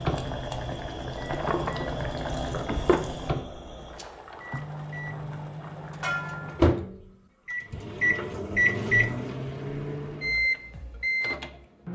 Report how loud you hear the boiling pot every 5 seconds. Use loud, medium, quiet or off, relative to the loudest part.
loud, loud, off.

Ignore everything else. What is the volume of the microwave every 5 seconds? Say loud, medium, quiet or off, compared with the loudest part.
medium, loud, loud.